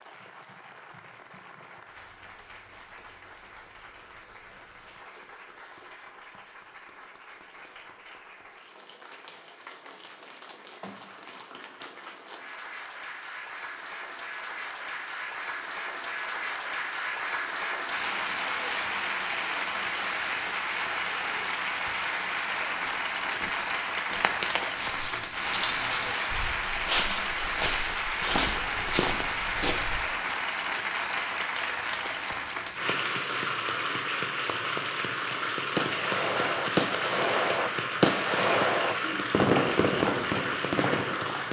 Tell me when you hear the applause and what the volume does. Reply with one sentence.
The applause can be heard from 0.0 to 41.4 s, getting louder.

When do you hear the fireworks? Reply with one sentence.
You can hear the fireworks from 35.8 to 41.4 s.